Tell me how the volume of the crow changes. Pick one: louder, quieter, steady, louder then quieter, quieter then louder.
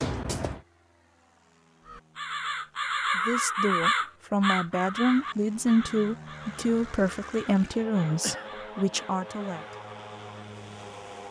quieter.